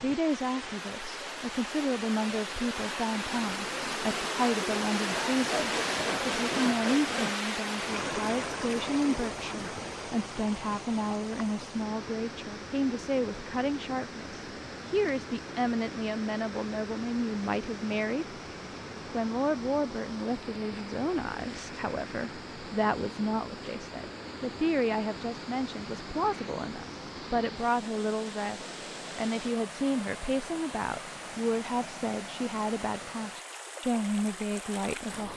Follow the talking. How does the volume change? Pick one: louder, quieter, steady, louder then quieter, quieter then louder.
steady.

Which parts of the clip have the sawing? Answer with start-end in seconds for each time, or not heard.
5.4-7.3.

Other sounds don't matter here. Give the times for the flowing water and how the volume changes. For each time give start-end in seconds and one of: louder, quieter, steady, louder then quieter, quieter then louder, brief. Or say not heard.
0.0-35.3 quieter.